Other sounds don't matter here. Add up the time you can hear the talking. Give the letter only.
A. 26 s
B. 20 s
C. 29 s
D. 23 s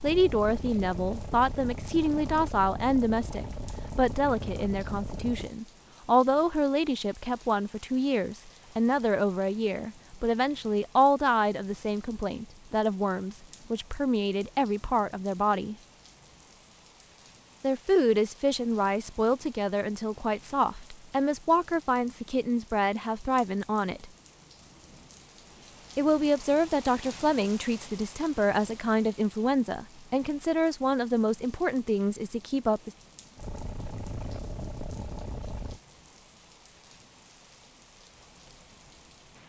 C.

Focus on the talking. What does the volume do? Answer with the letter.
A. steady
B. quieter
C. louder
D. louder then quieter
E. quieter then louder
A.